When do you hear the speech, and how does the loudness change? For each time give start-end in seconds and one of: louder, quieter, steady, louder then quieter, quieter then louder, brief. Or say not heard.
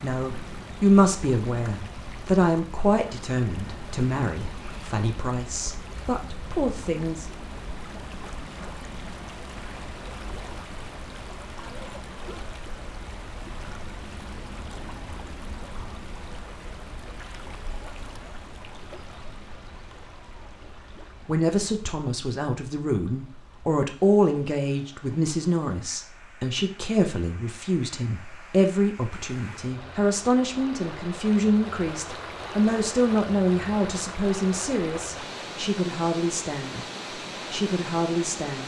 0.0-7.2 quieter
21.2-36.9 steady
37.5-38.6 brief.